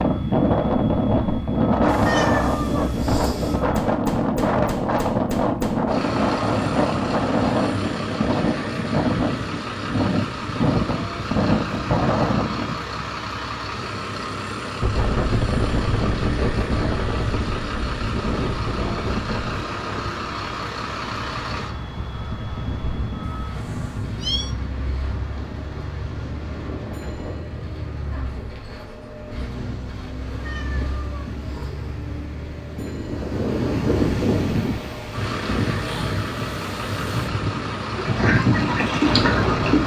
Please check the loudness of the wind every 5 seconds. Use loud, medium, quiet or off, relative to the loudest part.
loud, loud, loud, medium, quiet, quiet, medium, medium.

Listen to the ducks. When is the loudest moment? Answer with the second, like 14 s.
39 s.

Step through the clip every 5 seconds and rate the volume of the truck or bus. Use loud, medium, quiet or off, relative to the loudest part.
medium, loud, loud, loud, loud, medium, medium, loud.